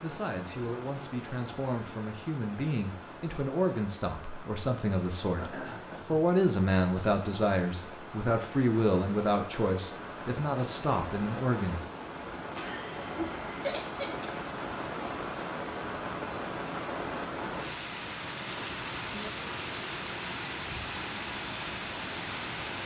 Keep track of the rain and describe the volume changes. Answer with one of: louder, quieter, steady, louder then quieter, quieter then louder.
louder.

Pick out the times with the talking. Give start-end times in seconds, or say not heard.
0.0-11.8.